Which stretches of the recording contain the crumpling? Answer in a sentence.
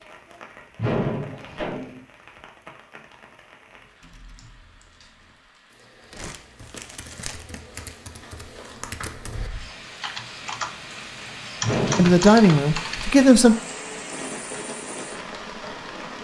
You can hear the crumpling from 6.1 to 7.8 s.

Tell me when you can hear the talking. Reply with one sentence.
The talking can be heard from 11.9 to 13.6 s.